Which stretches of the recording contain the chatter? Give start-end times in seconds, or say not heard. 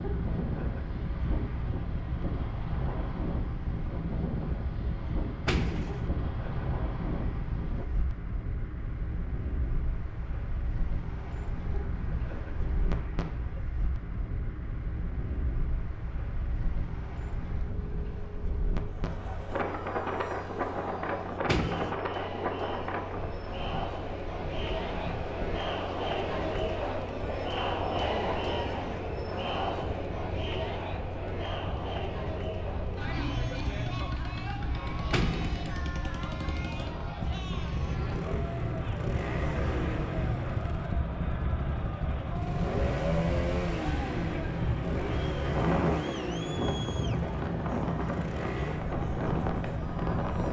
18.8-50.4.